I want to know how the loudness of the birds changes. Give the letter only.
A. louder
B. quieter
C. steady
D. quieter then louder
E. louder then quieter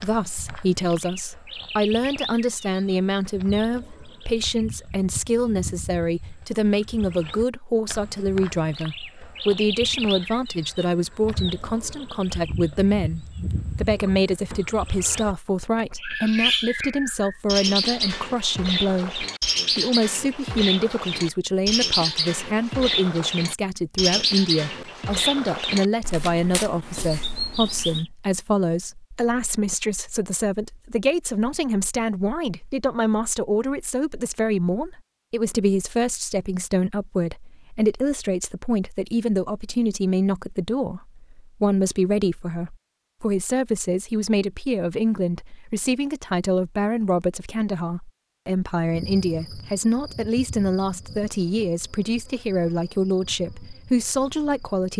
A.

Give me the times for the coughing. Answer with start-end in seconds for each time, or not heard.
not heard.